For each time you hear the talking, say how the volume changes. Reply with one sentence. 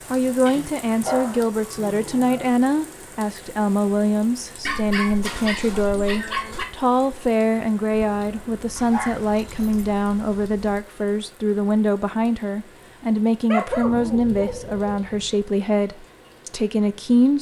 The talking can be heard from 0.1 to 17.3 s, at a steady volume.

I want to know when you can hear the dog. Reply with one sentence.
You can hear the dog from 0.5 to 2.5 s, from 4.7 to 6.7 s, from 8.8 to 10.8 s and from 13.5 to 15.3 s.